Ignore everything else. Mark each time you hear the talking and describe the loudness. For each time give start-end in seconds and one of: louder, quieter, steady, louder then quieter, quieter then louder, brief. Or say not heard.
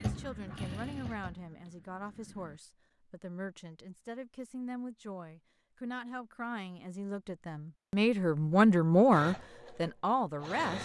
0.0-10.7 louder.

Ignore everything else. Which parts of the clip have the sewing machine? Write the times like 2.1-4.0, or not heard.
0.0-2.6, 9.1-10.7.